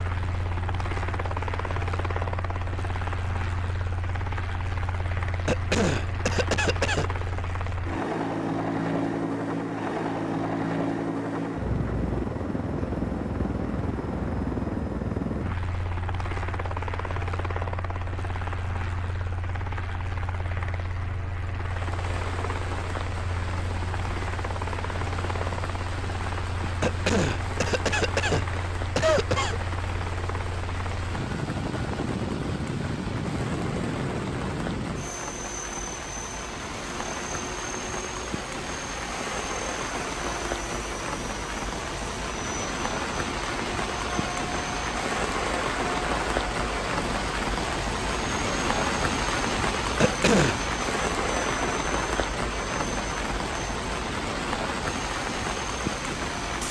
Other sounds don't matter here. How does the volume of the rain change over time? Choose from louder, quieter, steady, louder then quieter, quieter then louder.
louder.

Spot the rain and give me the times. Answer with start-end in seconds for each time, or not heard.
21.6-56.6.